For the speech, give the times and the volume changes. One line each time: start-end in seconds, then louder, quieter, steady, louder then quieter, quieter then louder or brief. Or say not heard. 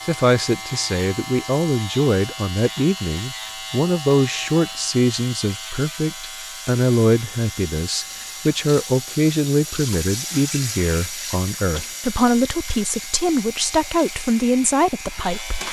0.0-15.6 steady.